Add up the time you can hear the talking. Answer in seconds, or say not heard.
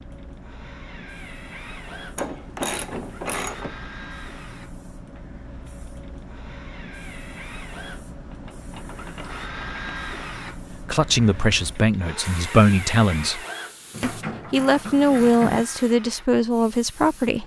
6 s.